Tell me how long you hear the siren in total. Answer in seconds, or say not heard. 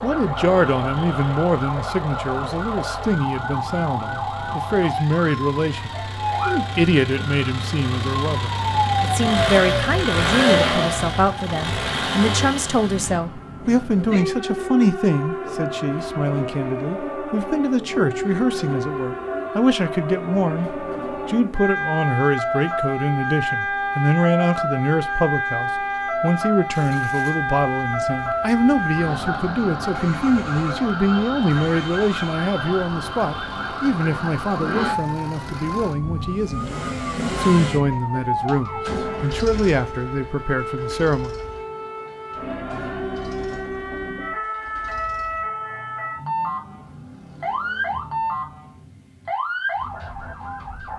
51 s.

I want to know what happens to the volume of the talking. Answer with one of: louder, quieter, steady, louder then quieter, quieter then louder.
steady.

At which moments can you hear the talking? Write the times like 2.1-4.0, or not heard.
0.0-41.4.